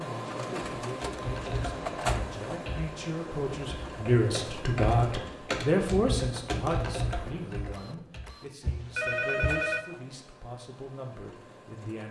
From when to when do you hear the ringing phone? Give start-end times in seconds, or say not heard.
8.7-9.8.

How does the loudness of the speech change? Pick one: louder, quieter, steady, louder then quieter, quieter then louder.
louder then quieter.